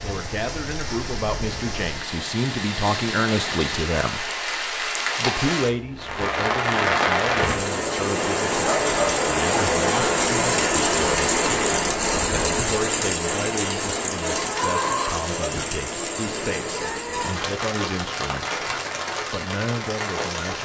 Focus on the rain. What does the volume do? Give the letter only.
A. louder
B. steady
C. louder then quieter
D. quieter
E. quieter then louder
C.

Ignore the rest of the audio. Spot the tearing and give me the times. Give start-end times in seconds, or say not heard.
not heard.